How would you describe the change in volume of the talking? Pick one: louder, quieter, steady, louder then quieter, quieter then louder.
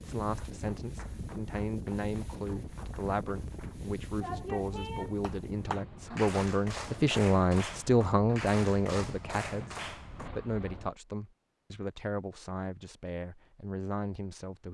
louder then quieter.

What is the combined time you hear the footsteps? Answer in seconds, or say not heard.
not heard.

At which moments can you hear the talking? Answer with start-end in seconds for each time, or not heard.
0.0-14.6.